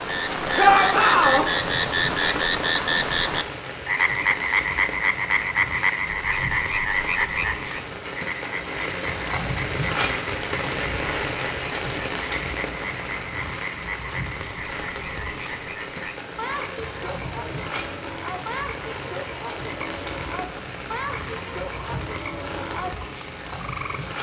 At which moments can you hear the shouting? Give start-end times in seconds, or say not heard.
0.6-1.4.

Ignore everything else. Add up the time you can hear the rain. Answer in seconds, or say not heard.
24 s.